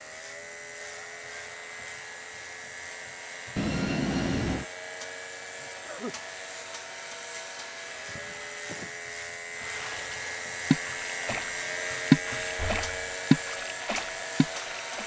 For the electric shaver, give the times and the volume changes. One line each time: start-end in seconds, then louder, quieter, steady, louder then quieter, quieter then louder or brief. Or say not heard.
0.0-15.0 louder.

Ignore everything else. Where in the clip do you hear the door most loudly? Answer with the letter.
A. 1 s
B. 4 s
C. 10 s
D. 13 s
B.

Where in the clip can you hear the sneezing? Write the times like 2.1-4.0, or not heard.
5.6-6.2.